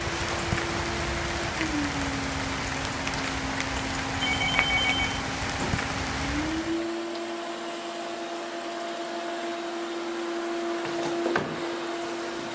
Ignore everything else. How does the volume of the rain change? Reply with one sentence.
The loudness of the rain stays about the same.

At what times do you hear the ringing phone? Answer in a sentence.
You can hear the ringing phone from 4.2 to 5.8 s.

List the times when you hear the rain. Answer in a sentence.
The rain can be heard from 0.0 to 6.9 s.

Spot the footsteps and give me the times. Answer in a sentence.
The footsteps can't be heard in this clip.